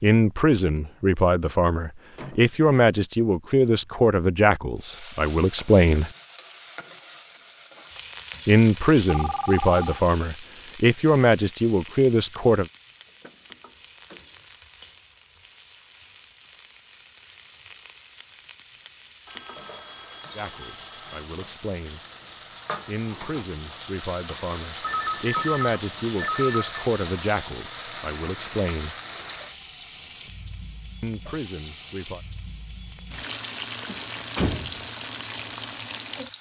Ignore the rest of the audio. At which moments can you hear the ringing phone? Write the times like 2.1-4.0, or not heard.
9.1-10.0, 19.2-21.2, 24.8-26.9.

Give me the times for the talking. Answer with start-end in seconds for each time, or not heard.
0.0-6.1, 8.4-12.7, 20.4-22.0, 22.9-28.9, 31.0-32.2.